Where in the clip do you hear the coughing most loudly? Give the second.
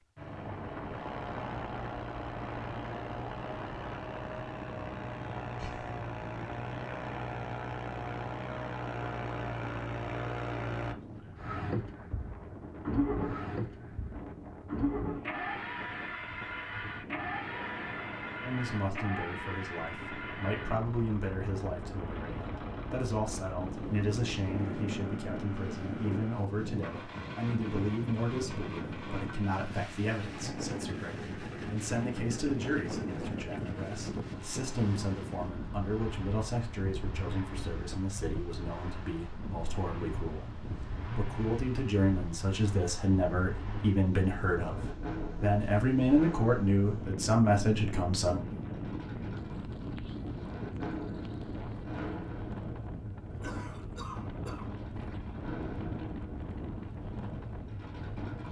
54 s.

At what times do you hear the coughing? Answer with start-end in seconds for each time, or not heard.
5.5-6.0, 53.4-54.8.